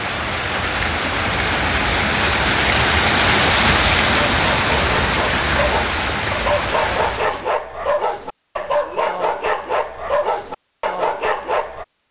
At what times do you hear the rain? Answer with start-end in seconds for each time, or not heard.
0.0-7.5.